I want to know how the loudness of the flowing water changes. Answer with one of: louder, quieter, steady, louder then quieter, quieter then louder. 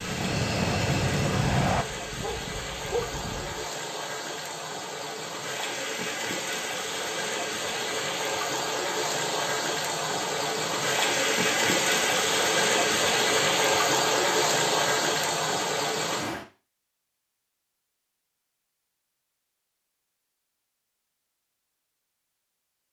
louder.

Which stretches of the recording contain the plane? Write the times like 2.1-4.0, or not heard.
0.0-1.9.